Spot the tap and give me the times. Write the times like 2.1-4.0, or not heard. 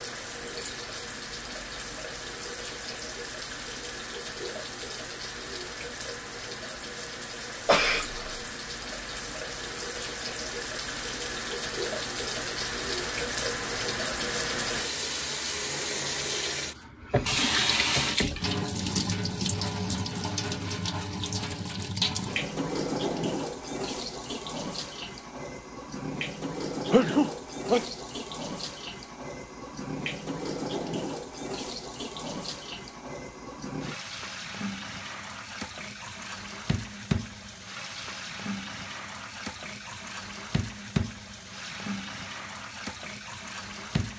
0.0-44.1.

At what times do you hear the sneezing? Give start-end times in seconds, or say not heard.
7.7-8.4, 26.9-27.9.